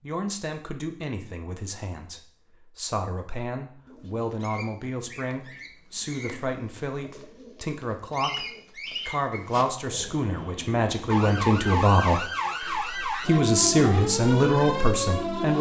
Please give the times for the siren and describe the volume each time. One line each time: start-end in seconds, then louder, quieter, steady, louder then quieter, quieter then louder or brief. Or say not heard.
11.1-15.5 steady.